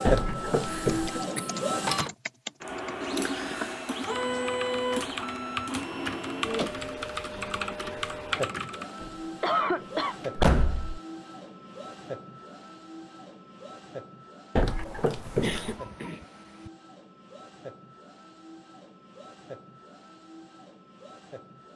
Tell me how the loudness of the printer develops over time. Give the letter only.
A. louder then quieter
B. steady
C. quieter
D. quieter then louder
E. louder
C.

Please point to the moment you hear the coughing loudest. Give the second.
10 s.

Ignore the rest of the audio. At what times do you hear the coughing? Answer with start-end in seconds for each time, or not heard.
0.7-1.5, 9.4-10.2, 15.2-16.7.